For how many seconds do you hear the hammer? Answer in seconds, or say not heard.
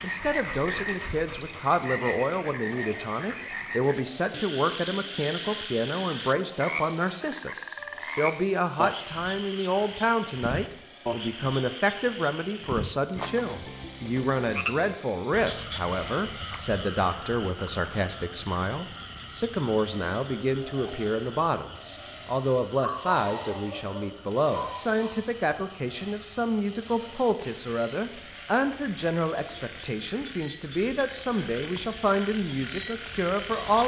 not heard.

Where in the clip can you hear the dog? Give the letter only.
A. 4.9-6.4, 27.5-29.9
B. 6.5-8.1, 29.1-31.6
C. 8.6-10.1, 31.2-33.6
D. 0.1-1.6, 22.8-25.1
D.